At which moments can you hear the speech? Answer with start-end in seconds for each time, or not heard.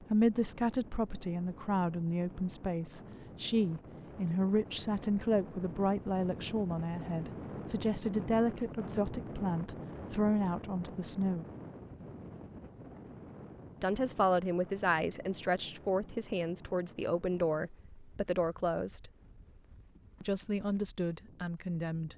0.0-11.4, 13.8-19.1, 20.2-22.1.